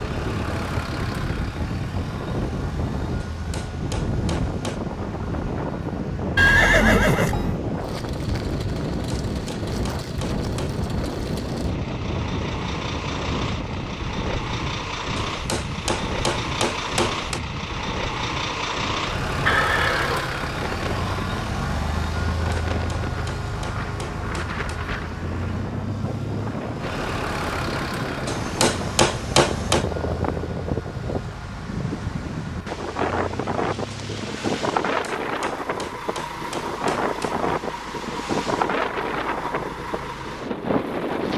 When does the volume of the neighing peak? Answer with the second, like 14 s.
7 s.